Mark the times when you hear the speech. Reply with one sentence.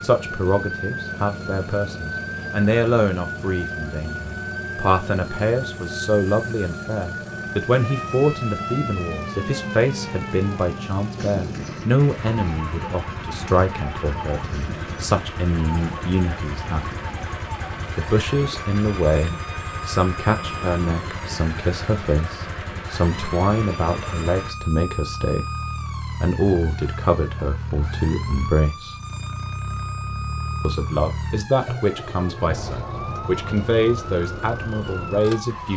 The speech can be heard from 0.0 to 16.9 s, from 17.9 to 28.9 s and from 30.6 to 35.7 s.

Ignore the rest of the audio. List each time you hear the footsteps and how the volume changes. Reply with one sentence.
You can't hear the footsteps here.